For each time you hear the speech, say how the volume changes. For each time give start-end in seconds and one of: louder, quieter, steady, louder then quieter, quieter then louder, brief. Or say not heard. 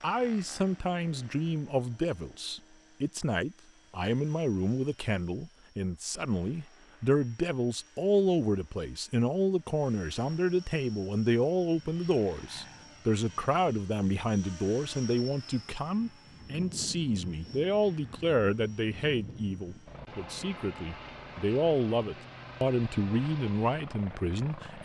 0.0-24.8 steady.